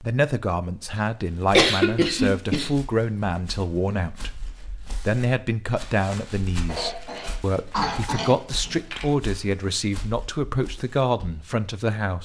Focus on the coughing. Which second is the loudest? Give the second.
2 s.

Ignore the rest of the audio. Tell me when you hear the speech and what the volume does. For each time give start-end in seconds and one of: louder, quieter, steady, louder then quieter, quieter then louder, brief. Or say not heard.
0.0-12.2 steady.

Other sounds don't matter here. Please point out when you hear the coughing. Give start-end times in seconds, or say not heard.
1.5-2.7, 6.7-8.8.